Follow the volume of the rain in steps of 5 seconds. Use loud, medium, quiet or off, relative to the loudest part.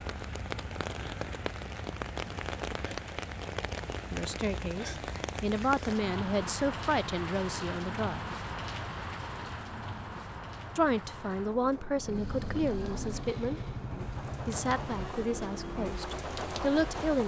loud, loud, medium, loud.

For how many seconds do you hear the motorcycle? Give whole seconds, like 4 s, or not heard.
5 s.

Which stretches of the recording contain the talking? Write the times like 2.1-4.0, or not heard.
4.1-8.2, 10.8-13.7, 14.4-17.2.